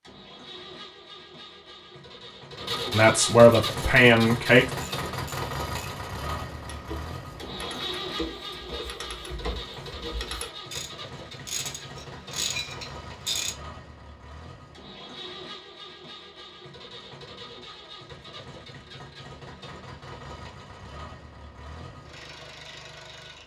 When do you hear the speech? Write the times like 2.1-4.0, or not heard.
2.9-4.7.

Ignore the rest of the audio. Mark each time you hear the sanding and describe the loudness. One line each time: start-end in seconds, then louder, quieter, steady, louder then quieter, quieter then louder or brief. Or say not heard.
not heard.